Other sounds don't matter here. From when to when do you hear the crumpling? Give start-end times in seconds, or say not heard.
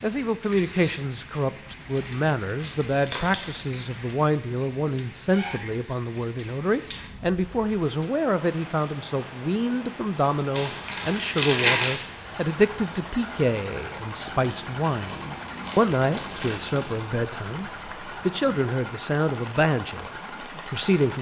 2.6-3.6, 10.5-12.0, 14.2-17.0.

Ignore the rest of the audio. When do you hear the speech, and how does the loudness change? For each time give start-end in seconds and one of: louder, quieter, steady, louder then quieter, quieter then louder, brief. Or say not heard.
0.0-21.1 steady.